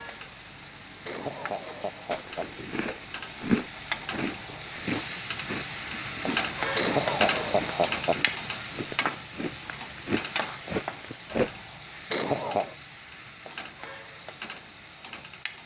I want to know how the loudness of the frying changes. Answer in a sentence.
The volume of the frying goes up, then down.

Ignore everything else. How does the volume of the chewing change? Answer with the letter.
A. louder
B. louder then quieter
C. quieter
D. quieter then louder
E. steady
D.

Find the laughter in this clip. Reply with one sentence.
You can hear the laughter from 1.1 to 2.5 s, from 6.8 to 8.2 s and from 12.1 to 12.8 s.